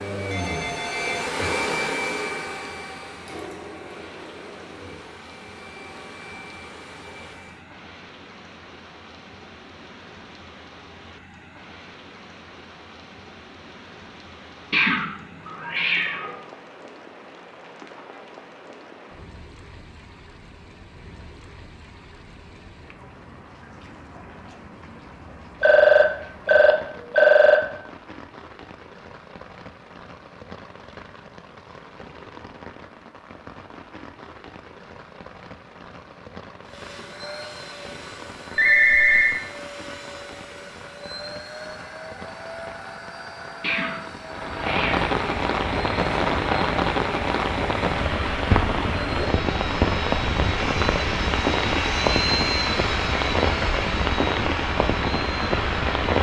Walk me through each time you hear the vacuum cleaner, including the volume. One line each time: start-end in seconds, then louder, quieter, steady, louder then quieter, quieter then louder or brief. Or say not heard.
0.0-7.7 quieter
36.6-56.1 louder.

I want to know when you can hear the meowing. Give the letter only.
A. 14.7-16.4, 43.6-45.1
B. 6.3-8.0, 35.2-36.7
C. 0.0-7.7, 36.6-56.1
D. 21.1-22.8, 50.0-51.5
A.